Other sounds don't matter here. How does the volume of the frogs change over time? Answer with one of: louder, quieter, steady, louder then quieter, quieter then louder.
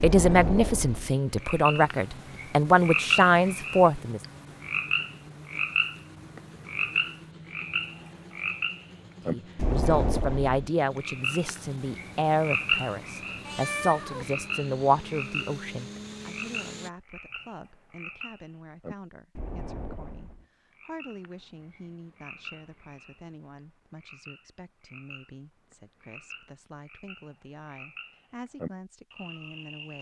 quieter.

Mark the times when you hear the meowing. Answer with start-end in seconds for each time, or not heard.
13.4-14.3.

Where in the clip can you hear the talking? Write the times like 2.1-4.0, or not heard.
0.0-4.2, 9.2-29.9.